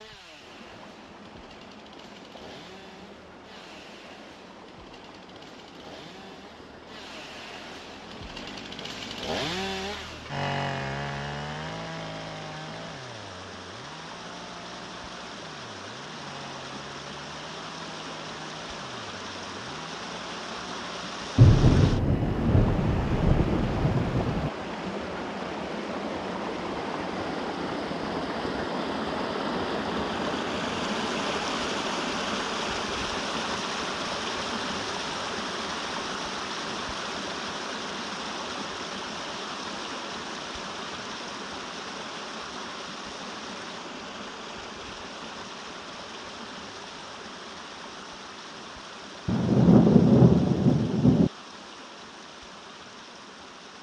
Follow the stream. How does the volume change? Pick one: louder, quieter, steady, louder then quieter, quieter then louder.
louder then quieter.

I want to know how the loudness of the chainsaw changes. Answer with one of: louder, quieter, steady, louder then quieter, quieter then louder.
louder then quieter.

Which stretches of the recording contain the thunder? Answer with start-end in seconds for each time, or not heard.
21.4-24.5, 49.2-51.3.